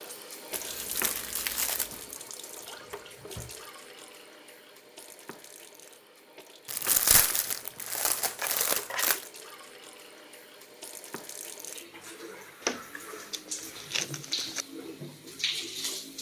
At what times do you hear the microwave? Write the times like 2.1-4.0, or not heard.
not heard.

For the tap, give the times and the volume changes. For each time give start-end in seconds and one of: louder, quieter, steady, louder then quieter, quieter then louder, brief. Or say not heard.
0.0-16.1 quieter then louder.